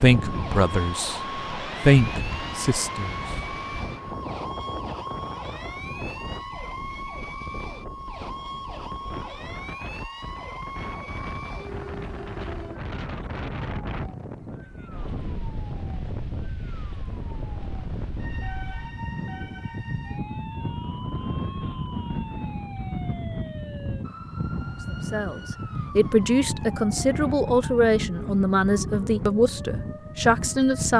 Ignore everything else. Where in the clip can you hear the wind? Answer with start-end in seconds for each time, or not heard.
0.0-30.9.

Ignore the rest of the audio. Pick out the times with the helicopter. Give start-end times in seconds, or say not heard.
not heard.